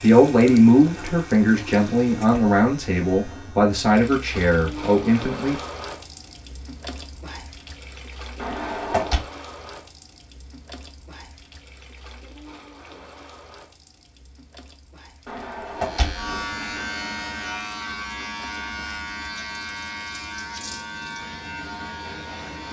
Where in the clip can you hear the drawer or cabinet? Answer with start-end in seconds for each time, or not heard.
8.3-9.2, 15.2-16.8.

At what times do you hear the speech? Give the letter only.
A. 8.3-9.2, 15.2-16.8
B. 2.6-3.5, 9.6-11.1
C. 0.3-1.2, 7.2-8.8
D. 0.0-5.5
D.